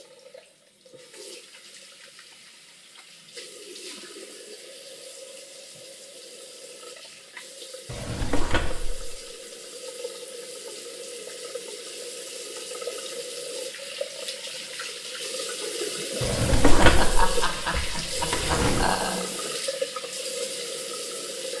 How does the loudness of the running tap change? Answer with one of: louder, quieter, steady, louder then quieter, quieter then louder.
louder.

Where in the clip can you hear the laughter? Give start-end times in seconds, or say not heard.
16.6-19.2.